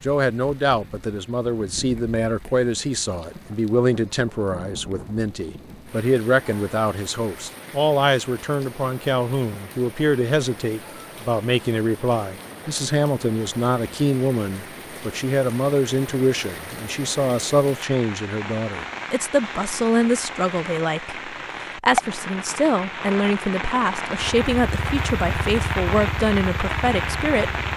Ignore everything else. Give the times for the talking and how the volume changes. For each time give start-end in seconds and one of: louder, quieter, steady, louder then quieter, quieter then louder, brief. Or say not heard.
0.0-27.5 steady.